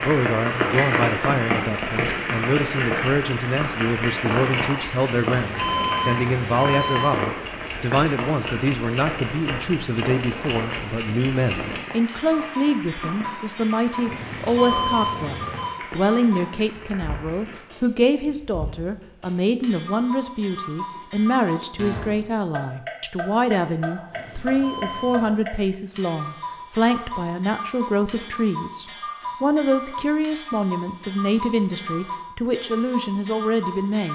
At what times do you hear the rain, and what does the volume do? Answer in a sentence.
The rain can be heard from 0.0 to 17.6 s, getting quieter.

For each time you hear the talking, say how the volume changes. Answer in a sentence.
The talking can be heard from 0.0 to 34.0 s, at a steady volume.